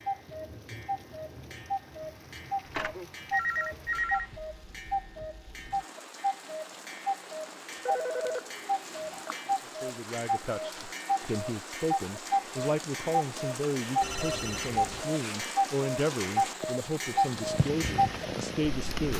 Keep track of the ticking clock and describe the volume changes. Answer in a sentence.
The loudness of the ticking clock goes up.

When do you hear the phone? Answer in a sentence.
You can hear the phone from 2.6 to 4.3 s, from 7.8 to 9.3 s and from 14.0 to 15.0 s.